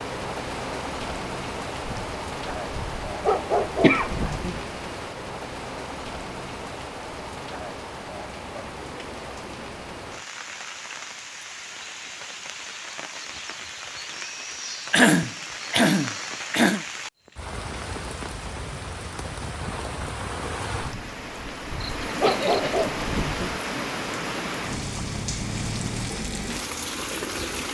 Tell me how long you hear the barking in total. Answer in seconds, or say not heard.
6 s.